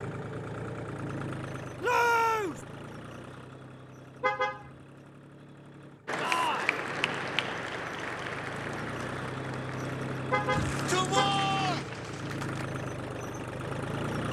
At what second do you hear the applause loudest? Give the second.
7 s.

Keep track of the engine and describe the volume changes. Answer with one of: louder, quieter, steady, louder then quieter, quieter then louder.
quieter then louder.